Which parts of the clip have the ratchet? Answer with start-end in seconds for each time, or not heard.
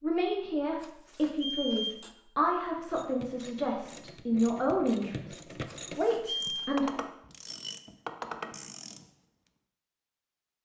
2.8-9.1.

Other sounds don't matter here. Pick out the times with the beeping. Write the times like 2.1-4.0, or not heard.
0.8-2.1, 5.7-6.8.